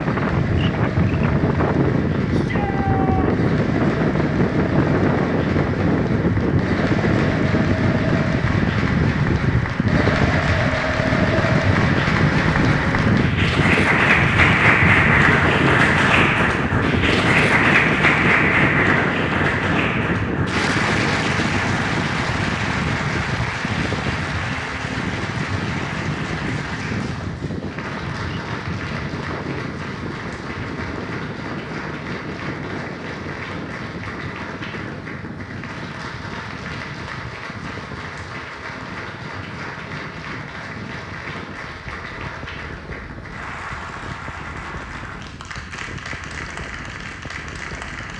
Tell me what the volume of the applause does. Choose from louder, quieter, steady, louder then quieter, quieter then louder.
louder then quieter.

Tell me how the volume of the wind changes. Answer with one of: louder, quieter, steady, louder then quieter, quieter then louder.
quieter.